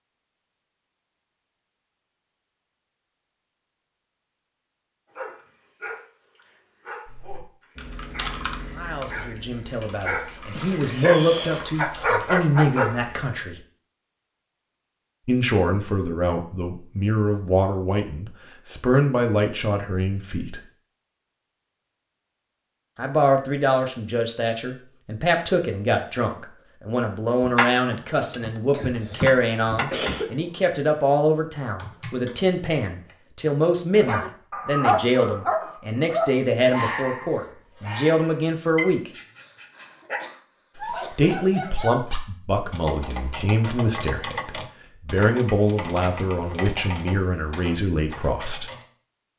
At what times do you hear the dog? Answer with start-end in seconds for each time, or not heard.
5.1-13.1, 34.0-42.2.